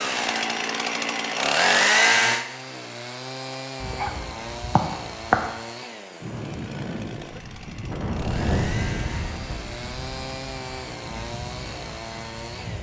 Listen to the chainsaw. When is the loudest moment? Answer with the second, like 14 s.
2 s.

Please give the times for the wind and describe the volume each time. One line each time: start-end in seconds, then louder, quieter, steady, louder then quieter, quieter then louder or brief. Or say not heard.
6.2-12.7 louder then quieter.